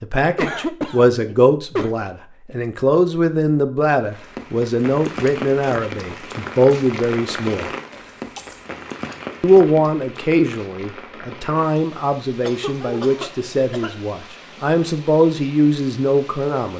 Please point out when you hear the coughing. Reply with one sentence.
You can hear the coughing from 0.3 to 1.9 s, from 7.9 to 8.6 s and from 12.4 to 14.2 s.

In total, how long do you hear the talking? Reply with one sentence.
The talking can be heard for 15 seconds in total.